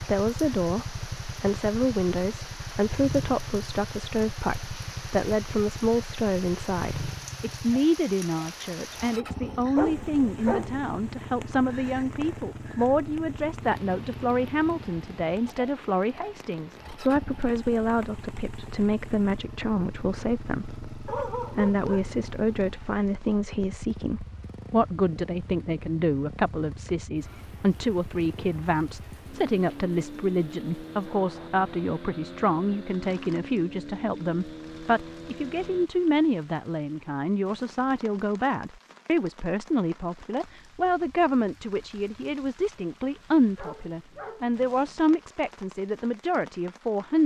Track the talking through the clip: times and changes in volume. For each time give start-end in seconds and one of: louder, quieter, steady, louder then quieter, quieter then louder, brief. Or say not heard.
0.0-47.2 steady.